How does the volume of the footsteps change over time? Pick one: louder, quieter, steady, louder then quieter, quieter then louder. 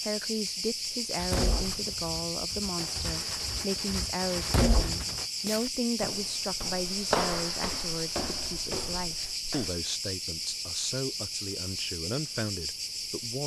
louder then quieter.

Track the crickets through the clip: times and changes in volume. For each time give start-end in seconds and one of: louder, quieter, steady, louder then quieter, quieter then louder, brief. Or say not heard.
0.0-13.4 steady.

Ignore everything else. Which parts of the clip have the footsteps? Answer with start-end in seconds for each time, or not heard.
5.5-9.8.